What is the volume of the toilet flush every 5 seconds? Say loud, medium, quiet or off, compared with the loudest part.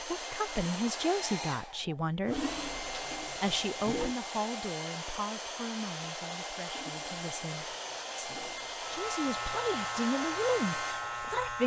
loud, quiet, off.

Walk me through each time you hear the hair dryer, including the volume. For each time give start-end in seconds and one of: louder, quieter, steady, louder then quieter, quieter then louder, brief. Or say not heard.
0.0-11.4 steady.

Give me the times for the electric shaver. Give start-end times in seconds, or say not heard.
8.8-11.6.